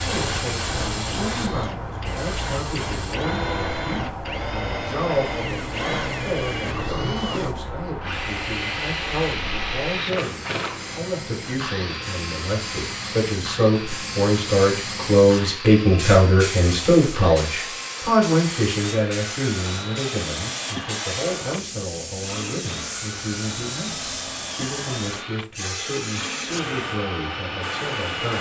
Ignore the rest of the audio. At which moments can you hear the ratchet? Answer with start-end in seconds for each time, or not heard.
not heard.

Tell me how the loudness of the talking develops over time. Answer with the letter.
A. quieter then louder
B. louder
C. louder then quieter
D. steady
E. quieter
C.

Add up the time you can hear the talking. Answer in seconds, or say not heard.
28 s.